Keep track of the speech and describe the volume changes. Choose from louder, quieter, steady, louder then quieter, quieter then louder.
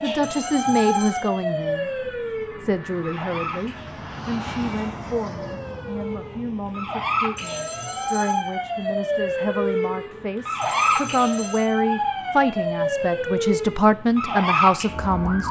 quieter then louder.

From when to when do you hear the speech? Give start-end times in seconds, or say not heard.
0.0-15.4.